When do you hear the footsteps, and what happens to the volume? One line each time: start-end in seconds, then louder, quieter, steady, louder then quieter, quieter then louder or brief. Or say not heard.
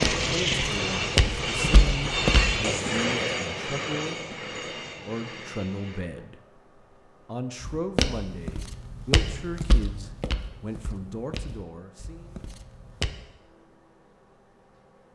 0.0-2.6 brief
7.6-13.1 quieter.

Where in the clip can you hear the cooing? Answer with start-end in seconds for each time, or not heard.
not heard.